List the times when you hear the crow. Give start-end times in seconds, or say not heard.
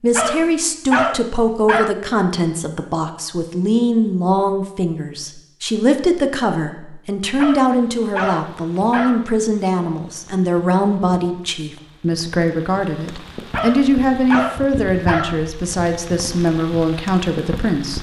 not heard.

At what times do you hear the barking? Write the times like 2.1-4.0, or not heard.
0.1-1.9, 7.3-9.2, 13.5-15.4.